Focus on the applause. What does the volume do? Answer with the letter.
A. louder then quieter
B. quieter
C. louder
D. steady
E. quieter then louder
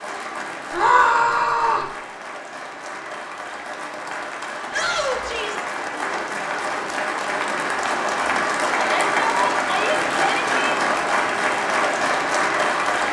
C.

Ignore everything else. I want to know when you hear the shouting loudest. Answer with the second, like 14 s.
1 s.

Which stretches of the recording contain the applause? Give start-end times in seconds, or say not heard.
0.0-13.0.